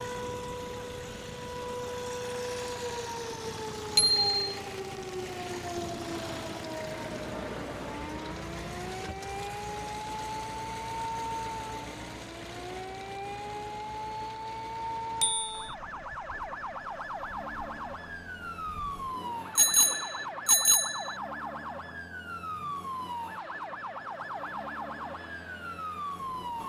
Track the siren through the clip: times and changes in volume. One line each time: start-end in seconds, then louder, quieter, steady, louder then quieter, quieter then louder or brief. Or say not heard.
0.0-26.6 steady.